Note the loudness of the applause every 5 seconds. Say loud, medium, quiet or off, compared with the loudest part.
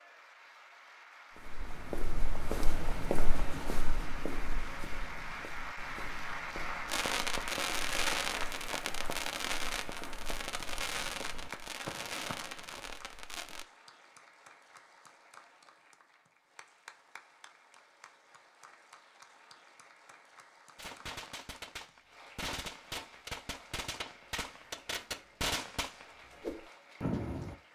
medium, loud, medium, quiet, quiet, quiet.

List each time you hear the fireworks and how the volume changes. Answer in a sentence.
You can hear the fireworks from 6.8 to 13.7 s, getting quieter; and from 20.8 to 27.6 s, getting louder.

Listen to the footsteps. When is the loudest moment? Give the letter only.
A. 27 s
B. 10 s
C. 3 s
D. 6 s
C.